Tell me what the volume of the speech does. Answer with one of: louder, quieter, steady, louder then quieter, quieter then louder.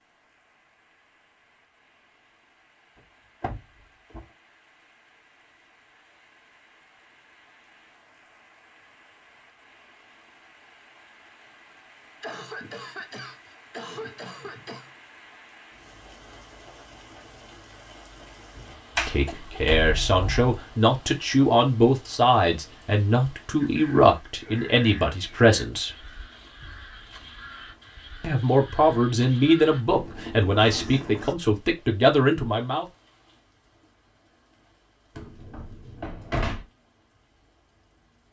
steady.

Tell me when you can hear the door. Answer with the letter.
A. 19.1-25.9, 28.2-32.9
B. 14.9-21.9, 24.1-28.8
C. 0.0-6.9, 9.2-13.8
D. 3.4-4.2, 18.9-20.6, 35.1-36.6
D.